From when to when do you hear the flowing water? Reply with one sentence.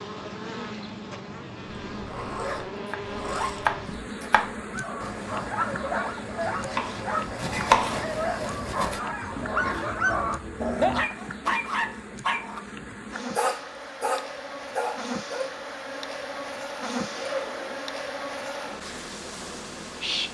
You can't hear the flowing water here.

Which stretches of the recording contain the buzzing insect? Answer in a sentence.
The buzzing insect can be heard from 0.0 to 20.3 s.